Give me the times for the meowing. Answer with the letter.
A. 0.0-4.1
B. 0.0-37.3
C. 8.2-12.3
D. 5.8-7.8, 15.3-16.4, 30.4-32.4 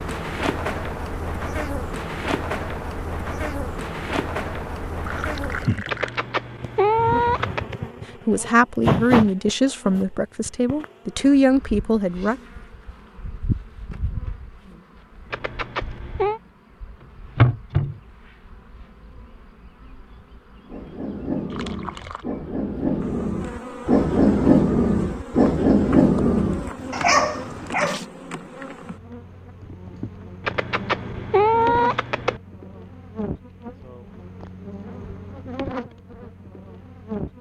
D.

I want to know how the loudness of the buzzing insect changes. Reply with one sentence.
The loudness of the buzzing insect goes down.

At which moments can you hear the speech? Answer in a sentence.
You can hear the speech from 8.2 to 12.3 s.